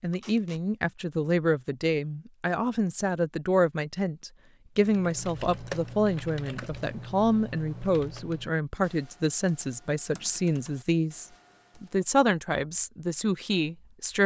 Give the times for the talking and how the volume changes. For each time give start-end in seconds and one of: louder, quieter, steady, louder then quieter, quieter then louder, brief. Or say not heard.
0.0-14.2 steady.